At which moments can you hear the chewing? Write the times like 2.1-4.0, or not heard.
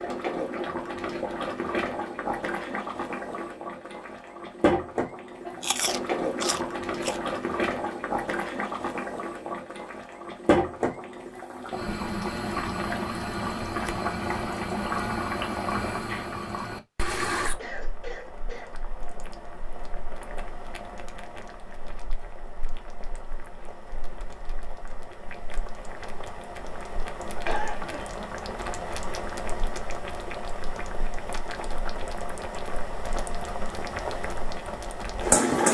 5.6-7.2.